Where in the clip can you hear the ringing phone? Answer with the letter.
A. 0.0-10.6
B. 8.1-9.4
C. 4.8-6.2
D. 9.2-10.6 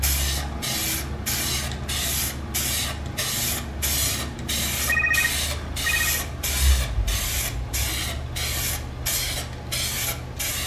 C.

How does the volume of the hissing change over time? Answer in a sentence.
The volume of the hissing stays about the same.